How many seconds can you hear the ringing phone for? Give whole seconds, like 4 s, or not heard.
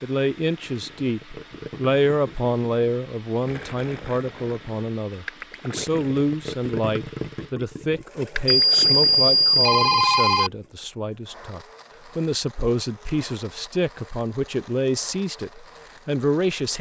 2 s.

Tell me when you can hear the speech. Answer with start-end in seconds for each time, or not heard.
0.0-16.7.